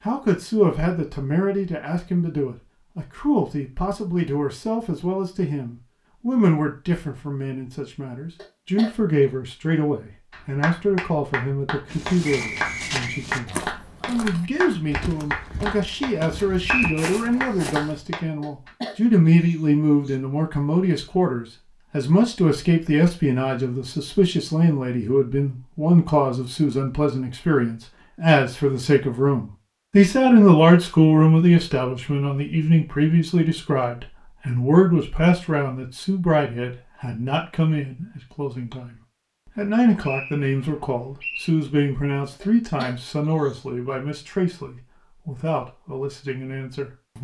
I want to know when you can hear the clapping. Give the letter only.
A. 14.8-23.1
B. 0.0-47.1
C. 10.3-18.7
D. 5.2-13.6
C.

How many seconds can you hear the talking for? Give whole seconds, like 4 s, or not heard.
47 s.